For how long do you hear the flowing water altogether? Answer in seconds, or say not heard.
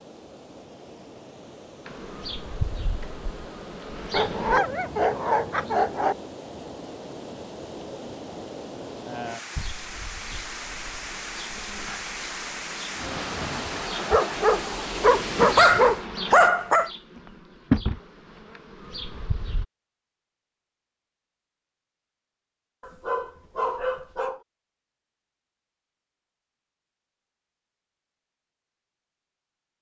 16 s.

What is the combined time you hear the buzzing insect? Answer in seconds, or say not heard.
13 s.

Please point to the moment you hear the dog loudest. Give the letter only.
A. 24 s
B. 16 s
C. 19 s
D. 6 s
B.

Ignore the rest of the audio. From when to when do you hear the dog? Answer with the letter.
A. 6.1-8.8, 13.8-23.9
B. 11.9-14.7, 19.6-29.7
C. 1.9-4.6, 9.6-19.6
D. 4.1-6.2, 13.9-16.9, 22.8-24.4
D.